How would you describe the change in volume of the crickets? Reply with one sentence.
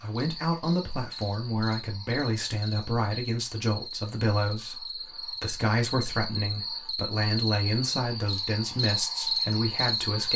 The loudness of the crickets goes up.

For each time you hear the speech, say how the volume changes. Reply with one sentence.
You can hear the speech from 0.0 to 10.3 s, at a steady volume.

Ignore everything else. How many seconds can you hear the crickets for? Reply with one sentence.
You can hear the crickets for 10 seconds altogether.